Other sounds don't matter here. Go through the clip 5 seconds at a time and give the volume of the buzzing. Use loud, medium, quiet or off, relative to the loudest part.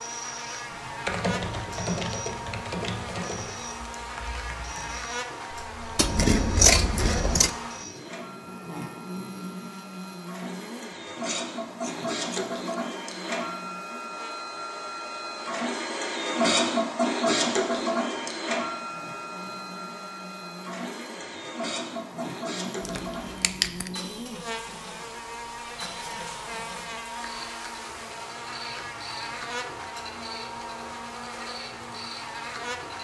loud, loud, medium, medium, loud, loud, loud.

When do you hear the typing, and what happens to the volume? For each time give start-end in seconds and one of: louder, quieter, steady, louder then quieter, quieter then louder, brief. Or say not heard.
0.7-6.0 quieter.